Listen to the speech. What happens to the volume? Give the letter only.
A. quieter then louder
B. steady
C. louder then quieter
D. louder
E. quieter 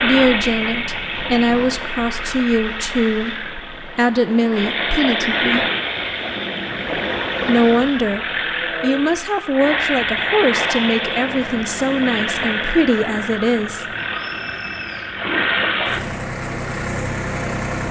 B.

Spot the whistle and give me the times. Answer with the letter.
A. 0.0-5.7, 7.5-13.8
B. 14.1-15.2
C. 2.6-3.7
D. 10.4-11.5
B.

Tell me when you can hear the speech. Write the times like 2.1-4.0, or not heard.
0.0-5.7, 7.5-13.8.